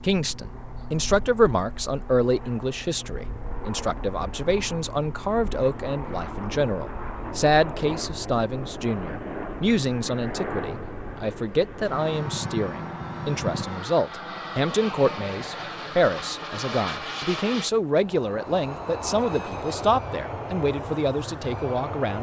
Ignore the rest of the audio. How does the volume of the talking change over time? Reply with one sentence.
The volume of the talking stays about the same.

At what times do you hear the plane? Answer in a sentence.
The plane can be heard from 0.0 to 22.1 s.